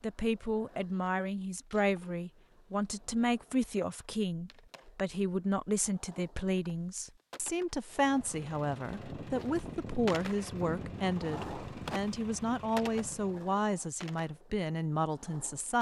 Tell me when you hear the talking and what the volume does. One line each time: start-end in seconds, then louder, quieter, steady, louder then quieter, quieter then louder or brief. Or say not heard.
0.0-15.7 steady.